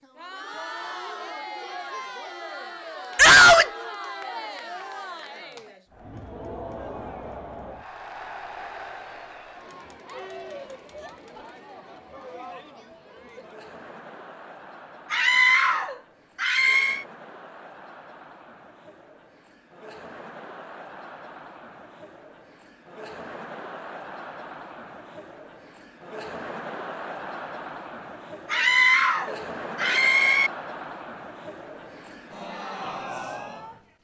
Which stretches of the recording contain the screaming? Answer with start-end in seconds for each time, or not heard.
3.1-3.7, 15.1-17.1, 28.5-30.5.